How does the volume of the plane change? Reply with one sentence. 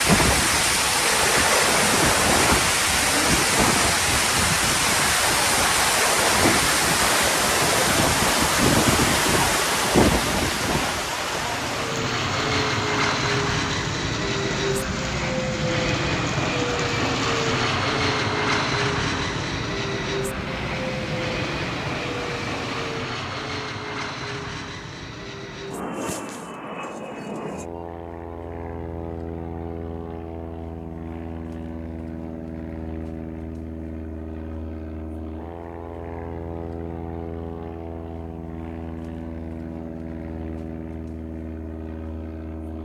The volume of the plane goes down.